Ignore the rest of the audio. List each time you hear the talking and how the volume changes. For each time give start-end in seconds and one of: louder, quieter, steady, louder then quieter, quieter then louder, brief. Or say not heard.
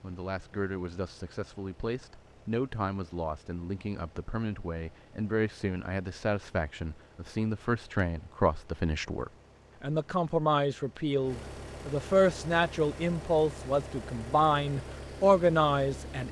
0.0-16.2 louder.